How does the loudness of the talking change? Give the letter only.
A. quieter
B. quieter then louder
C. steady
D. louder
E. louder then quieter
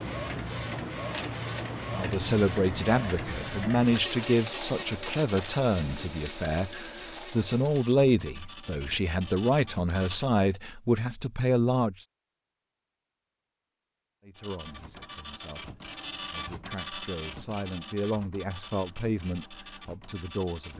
A.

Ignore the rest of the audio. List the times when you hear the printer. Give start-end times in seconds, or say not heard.
0.0-10.3, 14.3-20.7.